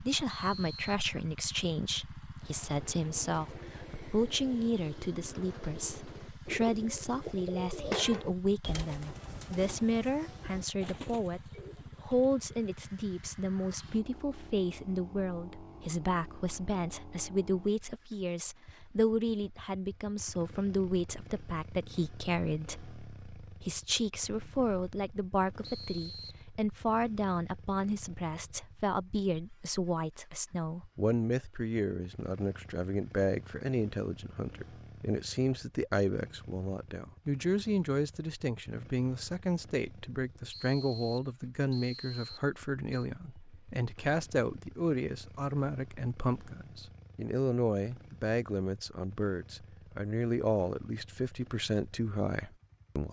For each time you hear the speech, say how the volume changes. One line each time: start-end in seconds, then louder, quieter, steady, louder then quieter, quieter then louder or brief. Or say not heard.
0.0-53.0 steady.